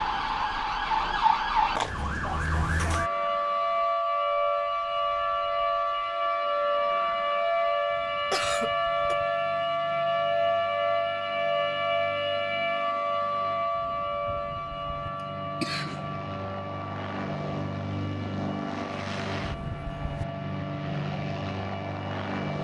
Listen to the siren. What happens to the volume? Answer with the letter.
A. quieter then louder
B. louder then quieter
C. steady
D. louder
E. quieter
E.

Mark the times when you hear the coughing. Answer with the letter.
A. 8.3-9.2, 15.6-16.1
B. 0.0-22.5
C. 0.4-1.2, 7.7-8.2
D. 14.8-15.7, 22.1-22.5
A.